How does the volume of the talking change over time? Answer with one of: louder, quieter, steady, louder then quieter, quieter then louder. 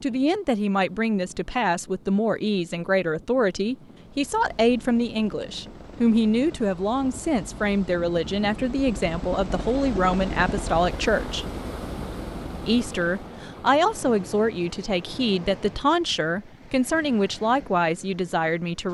steady.